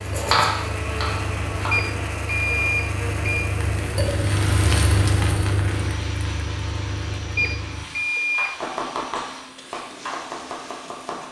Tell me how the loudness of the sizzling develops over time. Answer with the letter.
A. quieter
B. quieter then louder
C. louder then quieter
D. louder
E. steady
C.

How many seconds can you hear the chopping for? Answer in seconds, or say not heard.
4 s.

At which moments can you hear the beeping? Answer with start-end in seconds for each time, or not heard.
1.7-3.5, 7.3-8.5.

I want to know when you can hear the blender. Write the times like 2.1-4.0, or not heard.
0.0-11.2.